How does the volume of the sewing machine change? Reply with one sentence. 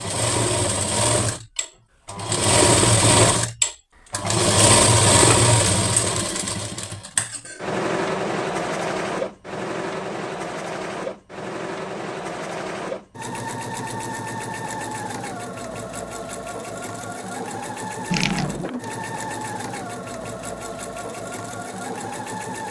The volume of the sewing machine goes down.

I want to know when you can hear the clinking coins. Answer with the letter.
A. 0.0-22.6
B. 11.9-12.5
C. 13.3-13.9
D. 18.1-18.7
D.